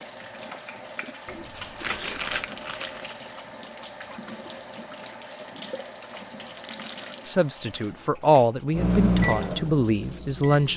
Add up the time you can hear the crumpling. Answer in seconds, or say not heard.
2 s.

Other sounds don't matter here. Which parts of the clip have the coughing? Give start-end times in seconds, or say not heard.
1.2-2.4.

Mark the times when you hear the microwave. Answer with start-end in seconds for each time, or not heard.
8.7-10.7.